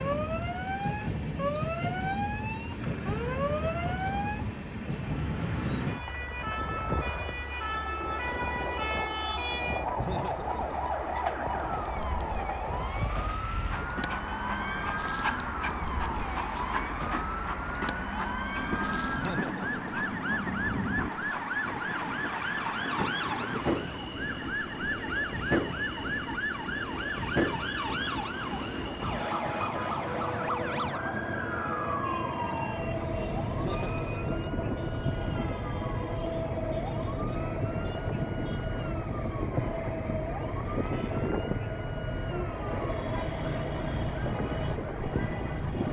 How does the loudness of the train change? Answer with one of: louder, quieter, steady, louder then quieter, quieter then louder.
steady.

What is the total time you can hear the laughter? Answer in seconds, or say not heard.
3 s.